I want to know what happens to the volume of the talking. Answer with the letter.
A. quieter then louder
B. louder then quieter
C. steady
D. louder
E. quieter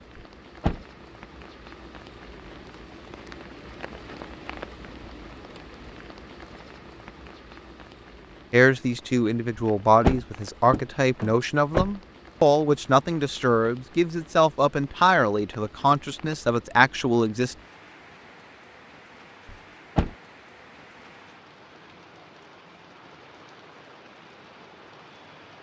C.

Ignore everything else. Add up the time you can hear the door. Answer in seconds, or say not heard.
4 s.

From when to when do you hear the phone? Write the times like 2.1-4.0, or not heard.
not heard.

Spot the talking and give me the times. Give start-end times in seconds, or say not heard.
8.5-17.6.